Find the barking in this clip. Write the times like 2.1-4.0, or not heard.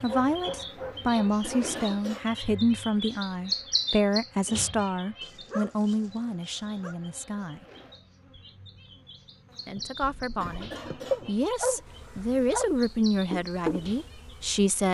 0.1-1.8, 5.2-7.0, 11.1-12.7.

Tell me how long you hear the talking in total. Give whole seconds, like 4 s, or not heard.
13 s.